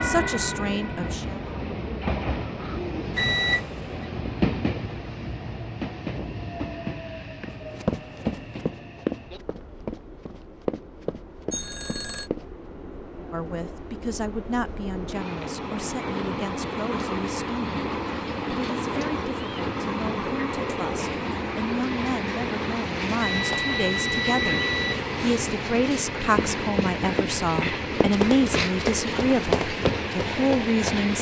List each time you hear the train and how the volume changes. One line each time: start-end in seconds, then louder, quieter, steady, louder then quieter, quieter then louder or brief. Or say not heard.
0.0-31.1 quieter then louder.